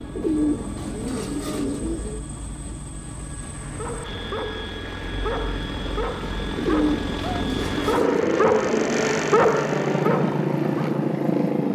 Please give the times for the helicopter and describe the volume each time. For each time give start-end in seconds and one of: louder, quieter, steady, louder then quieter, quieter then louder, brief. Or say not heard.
0.0-11.6 louder.